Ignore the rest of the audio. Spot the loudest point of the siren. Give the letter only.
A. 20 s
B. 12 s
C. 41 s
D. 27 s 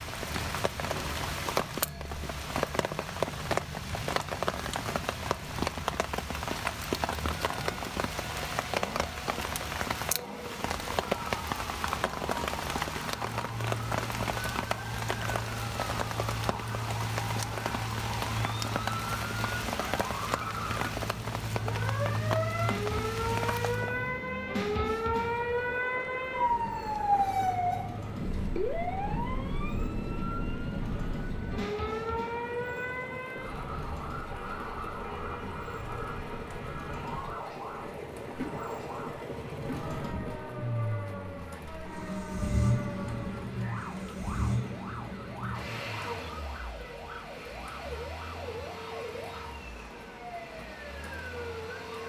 D.